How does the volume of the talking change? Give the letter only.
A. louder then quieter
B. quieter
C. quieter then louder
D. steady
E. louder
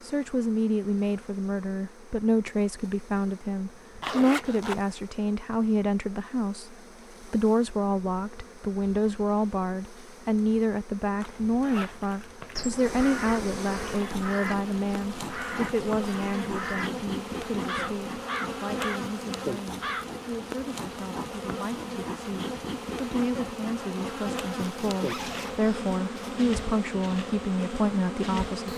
C.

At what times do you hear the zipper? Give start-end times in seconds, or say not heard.
4.0-4.8, 11.2-12.7, 24.6-26.4.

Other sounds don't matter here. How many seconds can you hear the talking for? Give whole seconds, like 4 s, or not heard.
29 s.